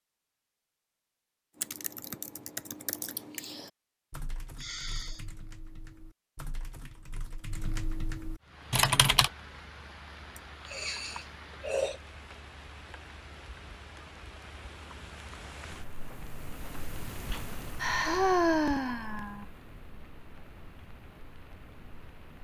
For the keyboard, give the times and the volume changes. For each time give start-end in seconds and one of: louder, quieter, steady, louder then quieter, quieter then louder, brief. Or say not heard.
1.6-9.3 quieter then louder.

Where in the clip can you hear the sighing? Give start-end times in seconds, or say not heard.
4.5-5.2, 10.3-11.9, 17.3-19.4.